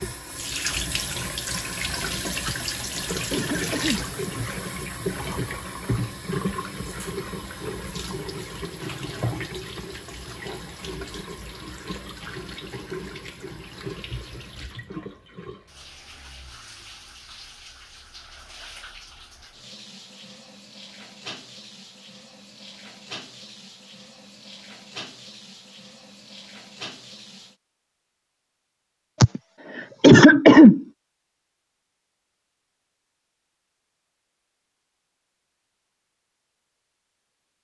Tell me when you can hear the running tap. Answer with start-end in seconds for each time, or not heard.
0.0-27.6.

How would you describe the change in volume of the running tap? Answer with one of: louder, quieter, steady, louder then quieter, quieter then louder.
quieter.